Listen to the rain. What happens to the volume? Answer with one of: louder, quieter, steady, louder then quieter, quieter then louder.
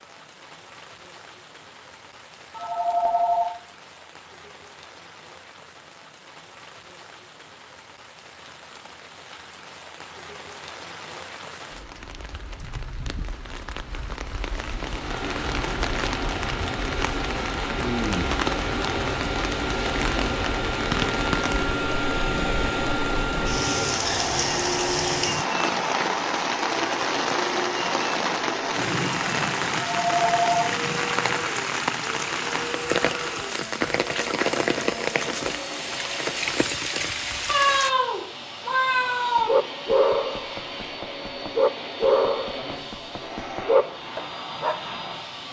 louder.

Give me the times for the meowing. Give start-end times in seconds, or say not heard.
37.5-39.5.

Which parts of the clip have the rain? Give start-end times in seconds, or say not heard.
0.0-38.0.